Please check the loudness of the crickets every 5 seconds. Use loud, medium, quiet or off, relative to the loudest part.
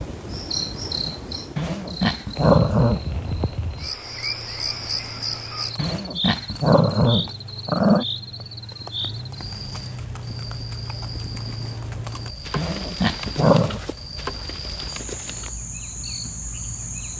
loud, loud, medium, loud.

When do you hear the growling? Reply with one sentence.
You can hear the growling from 1.6 to 3.0 s, from 5.8 to 8.1 s and from 12.6 to 13.8 s.